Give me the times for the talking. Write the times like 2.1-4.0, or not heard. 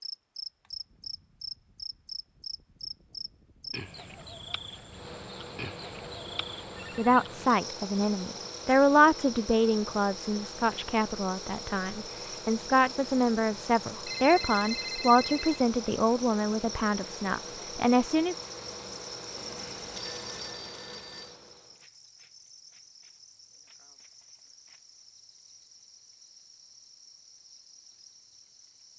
7.0-18.4.